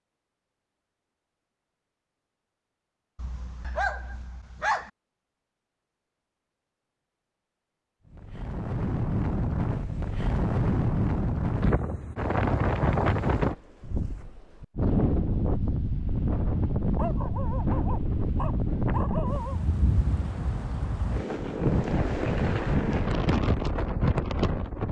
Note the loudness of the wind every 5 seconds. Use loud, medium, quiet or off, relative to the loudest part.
off, loud, loud, loud, loud.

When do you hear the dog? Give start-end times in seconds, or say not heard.
3.1-4.9, 16.9-19.6.